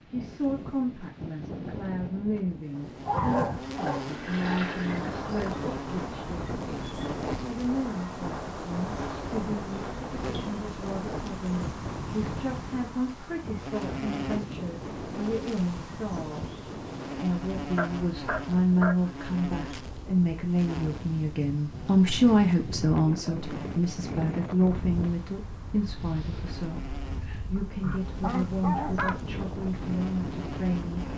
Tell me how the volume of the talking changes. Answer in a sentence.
The loudness of the talking goes up, then down.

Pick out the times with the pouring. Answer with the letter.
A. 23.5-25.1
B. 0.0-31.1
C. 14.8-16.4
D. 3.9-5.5
D.